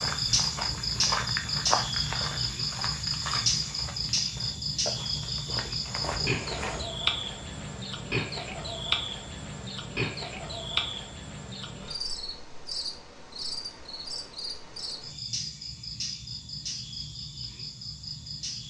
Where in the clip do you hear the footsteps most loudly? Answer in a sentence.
The volume of the footsteps peaks at 2 seconds.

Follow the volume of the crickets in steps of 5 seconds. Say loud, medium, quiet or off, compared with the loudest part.
loud, loud, medium, medium.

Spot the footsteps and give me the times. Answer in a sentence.
You can hear the footsteps from 0.0 to 6.8 s.